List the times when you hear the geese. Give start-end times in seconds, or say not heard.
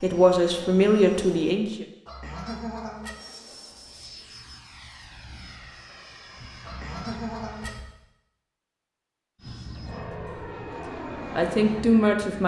2.0-3.1, 6.6-7.8.